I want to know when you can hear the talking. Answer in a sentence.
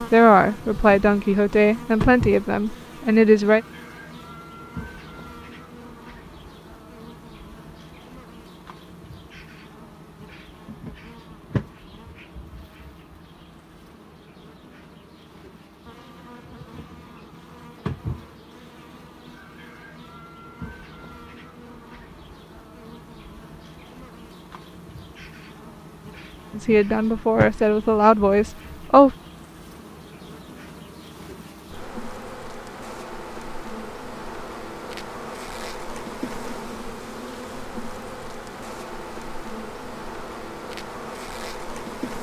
The talking can be heard from 0.0 to 3.6 s and from 26.6 to 29.1 s.